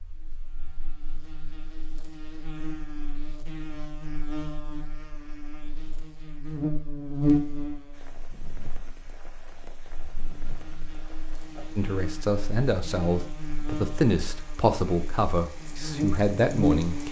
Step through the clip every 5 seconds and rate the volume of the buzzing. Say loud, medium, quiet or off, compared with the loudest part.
quiet, loud, quiet, loud.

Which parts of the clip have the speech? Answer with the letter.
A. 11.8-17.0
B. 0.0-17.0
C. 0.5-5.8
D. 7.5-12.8
A.